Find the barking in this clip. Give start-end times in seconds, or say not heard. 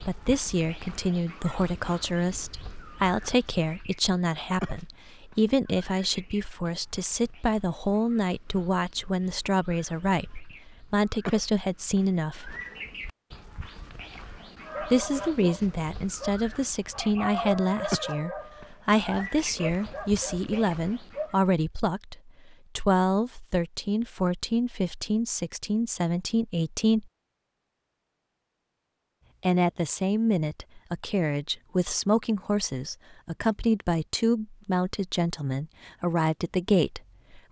14.7-21.4.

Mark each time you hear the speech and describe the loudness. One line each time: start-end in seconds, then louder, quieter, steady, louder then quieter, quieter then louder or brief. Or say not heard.
0.1-12.6 steady
14.8-27.1 steady
29.4-37.4 steady.